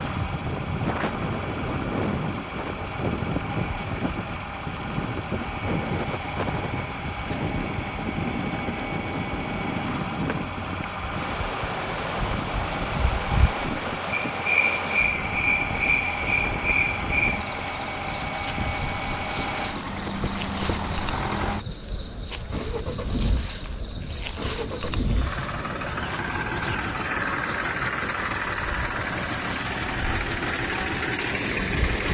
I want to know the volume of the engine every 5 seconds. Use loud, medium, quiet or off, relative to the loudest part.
medium, medium, medium, loud, medium, loud, loud.